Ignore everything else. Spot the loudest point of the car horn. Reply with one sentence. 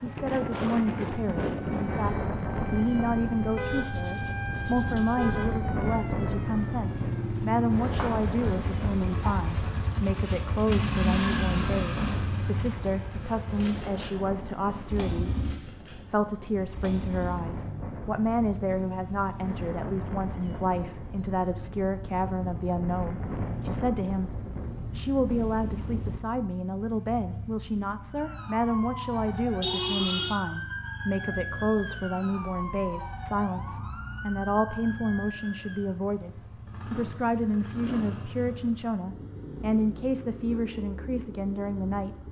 The volume of the car horn peaks at 30 seconds.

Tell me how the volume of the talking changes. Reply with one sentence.
The volume of the talking stays about the same.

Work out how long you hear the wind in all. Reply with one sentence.
You can hear the wind for 26 seconds altogether.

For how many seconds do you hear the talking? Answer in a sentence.
The talking can be heard for 42 seconds in total.